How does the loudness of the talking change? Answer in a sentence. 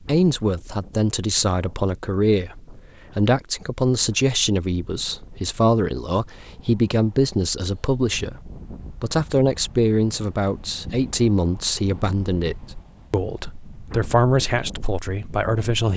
The volume of the talking stays about the same.